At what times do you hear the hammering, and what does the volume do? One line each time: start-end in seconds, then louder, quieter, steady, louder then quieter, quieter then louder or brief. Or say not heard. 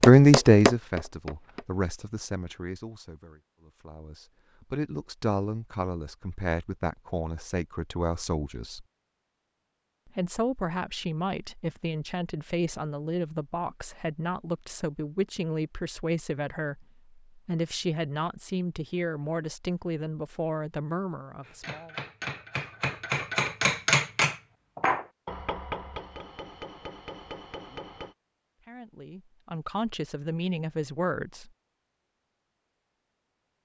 0.0-1.6 brief
21.4-28.1 louder then quieter.